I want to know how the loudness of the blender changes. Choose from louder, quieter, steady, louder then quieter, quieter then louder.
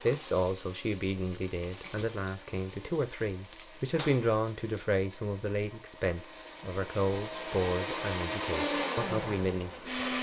louder.